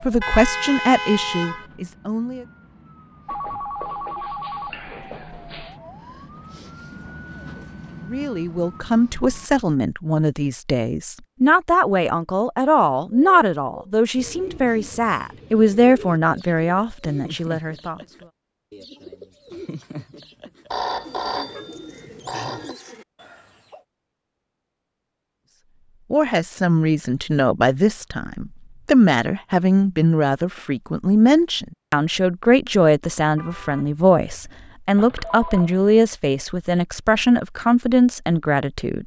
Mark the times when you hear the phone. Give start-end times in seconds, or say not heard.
3.2-5.8, 20.7-22.8, 35.0-36.0.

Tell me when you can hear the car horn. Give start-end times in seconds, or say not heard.
0.2-1.7, 21.3-22.8, 33.4-34.6.